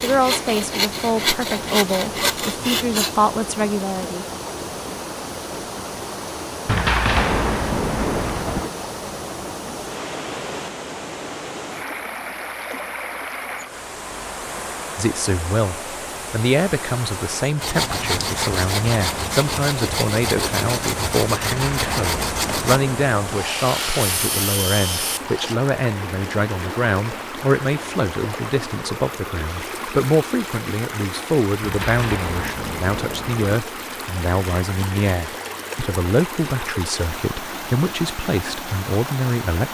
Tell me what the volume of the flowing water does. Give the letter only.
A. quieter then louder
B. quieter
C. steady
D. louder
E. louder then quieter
C.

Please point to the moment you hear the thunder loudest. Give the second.
7 s.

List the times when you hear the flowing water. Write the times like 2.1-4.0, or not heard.
0.0-39.6.